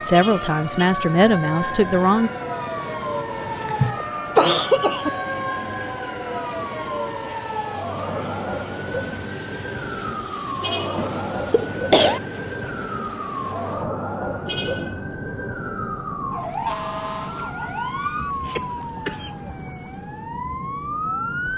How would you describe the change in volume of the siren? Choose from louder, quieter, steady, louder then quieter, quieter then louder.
steady.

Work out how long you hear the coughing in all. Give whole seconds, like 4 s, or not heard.
4 s.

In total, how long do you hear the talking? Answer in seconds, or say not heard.
2 s.